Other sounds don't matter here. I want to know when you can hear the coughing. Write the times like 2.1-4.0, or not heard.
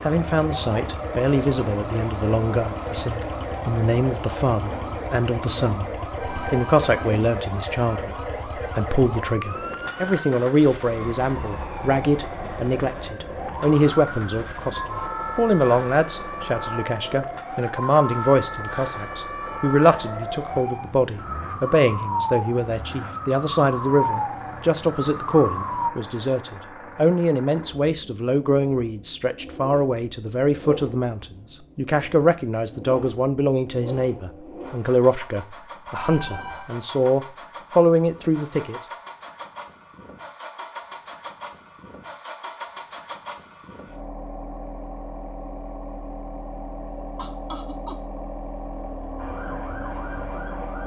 47.1-48.0.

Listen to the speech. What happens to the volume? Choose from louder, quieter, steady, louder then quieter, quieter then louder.
steady.